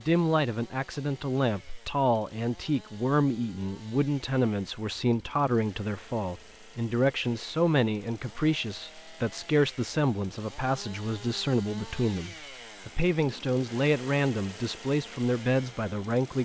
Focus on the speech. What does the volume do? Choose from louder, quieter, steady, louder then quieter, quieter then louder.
steady.